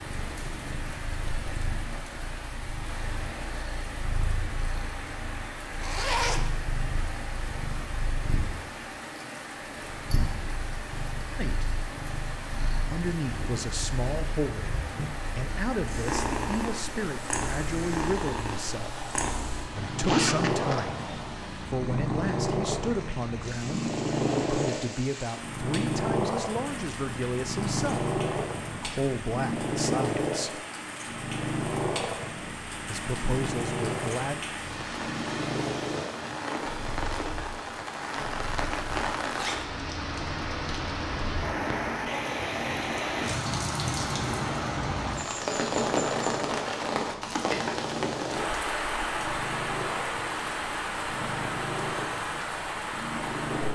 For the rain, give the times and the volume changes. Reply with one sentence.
You can hear the rain from 0.0 to 53.6 s, getting louder.